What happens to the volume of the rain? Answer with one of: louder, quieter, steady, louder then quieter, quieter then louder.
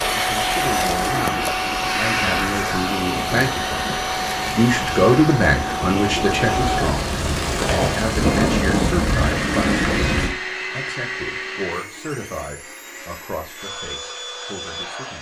louder.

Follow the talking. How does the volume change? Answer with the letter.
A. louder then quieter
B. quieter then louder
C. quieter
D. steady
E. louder
A.